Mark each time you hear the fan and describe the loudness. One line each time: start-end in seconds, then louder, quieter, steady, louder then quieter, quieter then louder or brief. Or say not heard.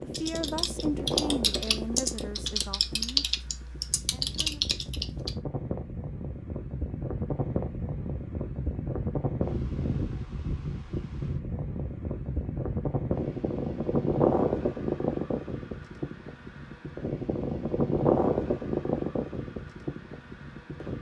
0.0-20.9 louder.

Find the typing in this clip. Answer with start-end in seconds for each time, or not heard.
0.1-5.4.